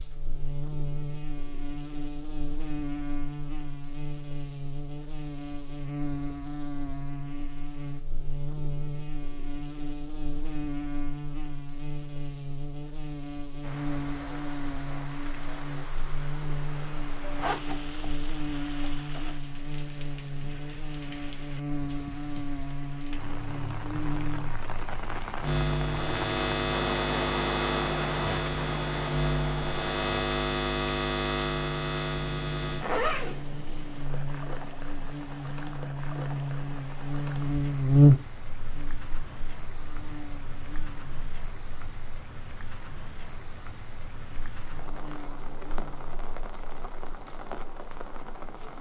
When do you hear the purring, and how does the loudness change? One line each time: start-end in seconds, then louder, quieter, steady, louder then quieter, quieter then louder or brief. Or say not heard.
not heard.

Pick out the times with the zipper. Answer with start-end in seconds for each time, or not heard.
17.4-19.4, 32.8-33.5.